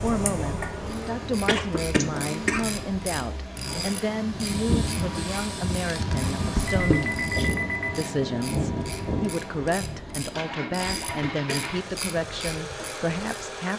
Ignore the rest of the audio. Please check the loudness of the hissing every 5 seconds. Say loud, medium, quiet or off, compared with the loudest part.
loud, loud, off.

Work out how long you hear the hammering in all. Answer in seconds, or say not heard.
not heard.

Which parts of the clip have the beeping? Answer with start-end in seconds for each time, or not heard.
6.7-7.9.